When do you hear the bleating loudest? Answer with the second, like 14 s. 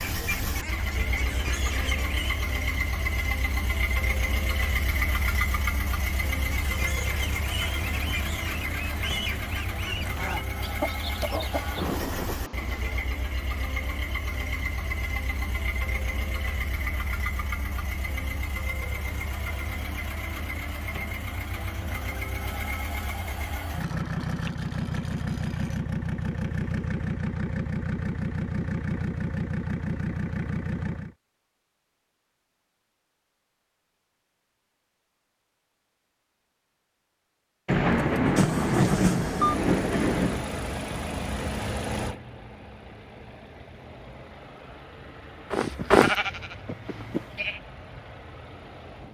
46 s.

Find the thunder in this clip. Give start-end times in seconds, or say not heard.
11.5-13.0, 37.6-40.5.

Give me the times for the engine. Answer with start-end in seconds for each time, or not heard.
0.0-31.1, 37.9-49.0.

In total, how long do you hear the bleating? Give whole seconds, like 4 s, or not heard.
2 s.